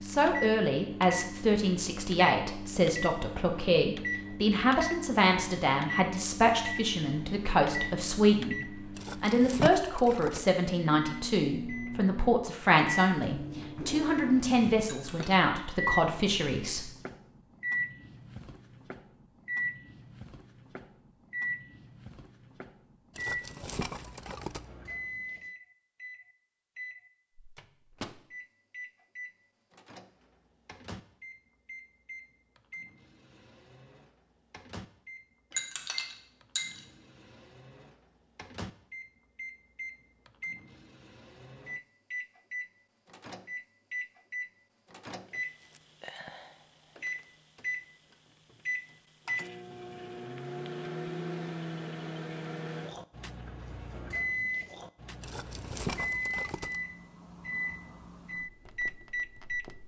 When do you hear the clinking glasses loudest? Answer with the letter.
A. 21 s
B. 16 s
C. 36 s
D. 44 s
C.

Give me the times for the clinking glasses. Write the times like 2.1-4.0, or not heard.
14.8-15.4, 35.5-36.9.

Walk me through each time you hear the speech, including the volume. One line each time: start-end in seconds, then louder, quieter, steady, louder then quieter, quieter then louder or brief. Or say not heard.
0.0-16.9 steady.